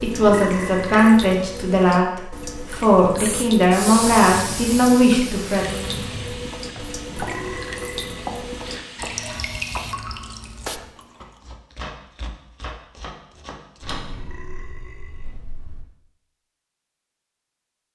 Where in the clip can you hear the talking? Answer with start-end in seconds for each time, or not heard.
0.0-5.8.